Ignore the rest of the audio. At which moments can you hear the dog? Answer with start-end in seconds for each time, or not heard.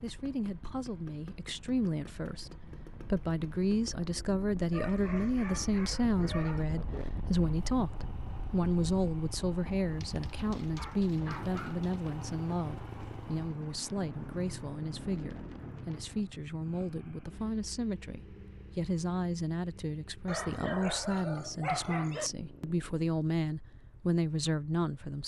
4.7-6.7, 10.0-12.0, 20.2-22.3.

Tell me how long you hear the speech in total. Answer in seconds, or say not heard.
25 s.